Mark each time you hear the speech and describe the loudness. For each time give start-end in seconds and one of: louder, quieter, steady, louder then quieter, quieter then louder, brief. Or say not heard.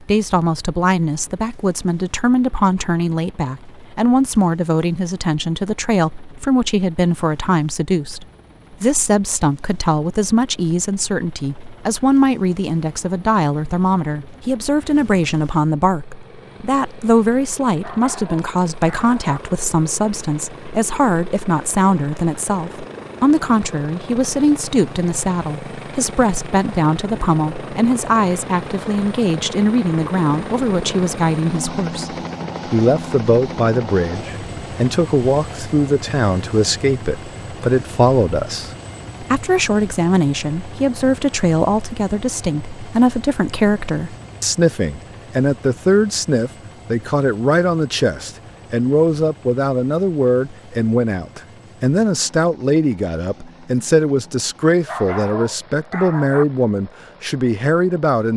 0.0-58.3 steady.